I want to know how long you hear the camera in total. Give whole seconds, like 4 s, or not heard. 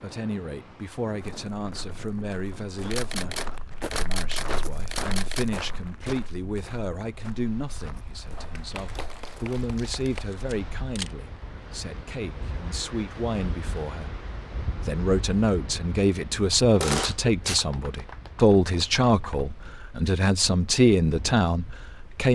4 s.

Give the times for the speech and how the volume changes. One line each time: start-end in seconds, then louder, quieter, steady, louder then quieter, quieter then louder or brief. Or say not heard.
0.0-22.3 louder.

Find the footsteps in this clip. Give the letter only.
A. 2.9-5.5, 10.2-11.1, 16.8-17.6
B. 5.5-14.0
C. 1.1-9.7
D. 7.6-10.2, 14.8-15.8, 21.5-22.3
C.